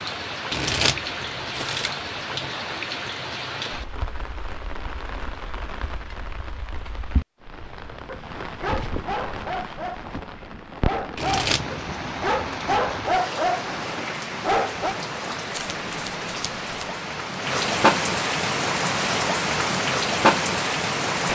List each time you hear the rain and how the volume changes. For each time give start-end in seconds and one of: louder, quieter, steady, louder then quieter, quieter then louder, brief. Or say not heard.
0.0-21.3 quieter then louder.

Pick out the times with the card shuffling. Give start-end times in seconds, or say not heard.
0.5-2.5, 11.2-11.8, 15.5-16.9.